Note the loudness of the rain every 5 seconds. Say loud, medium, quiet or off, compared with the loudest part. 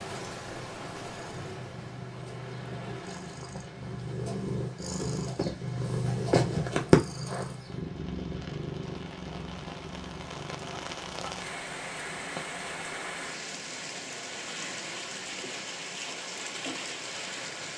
medium, medium, loud, loud.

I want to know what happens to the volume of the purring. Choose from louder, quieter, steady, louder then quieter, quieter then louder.
louder then quieter.